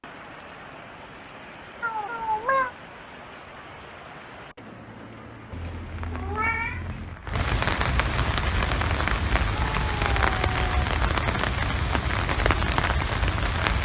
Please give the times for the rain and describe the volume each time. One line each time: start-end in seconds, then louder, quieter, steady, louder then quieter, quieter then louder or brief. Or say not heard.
0.0-13.7 louder.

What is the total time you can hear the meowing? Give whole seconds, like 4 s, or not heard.
4 s.